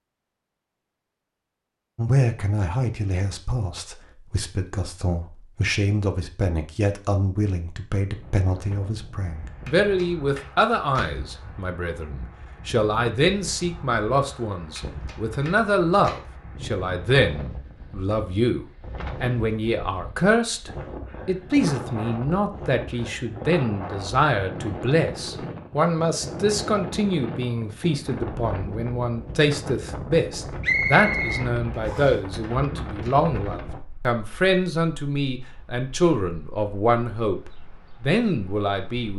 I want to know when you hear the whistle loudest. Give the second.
31 s.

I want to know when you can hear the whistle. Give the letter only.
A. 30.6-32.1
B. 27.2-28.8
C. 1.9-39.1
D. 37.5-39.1
A.